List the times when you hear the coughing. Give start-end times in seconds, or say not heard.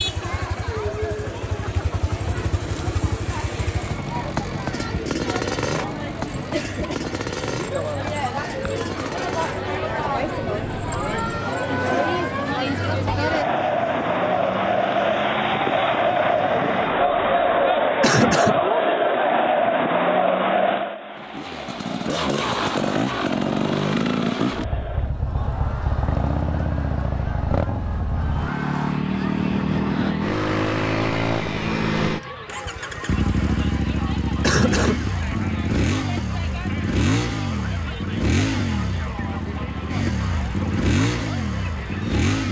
18.0-18.6, 34.4-35.0.